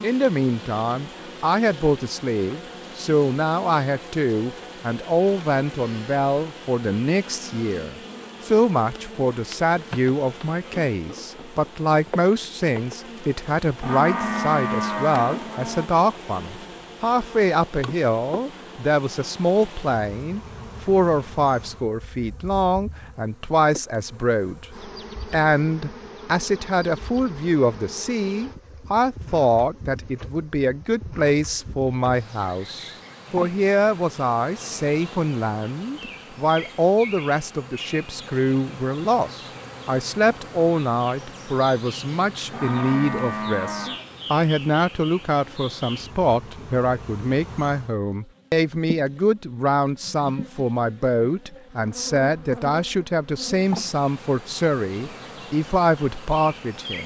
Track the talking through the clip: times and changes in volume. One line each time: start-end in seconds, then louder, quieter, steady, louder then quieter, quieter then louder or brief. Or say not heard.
0.0-57.0 steady.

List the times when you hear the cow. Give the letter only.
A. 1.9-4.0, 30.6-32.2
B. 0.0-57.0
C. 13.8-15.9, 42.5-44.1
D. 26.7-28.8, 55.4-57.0
C.